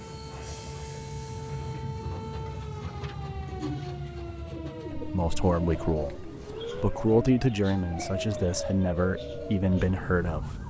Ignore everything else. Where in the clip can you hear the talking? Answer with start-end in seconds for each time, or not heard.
5.0-10.5.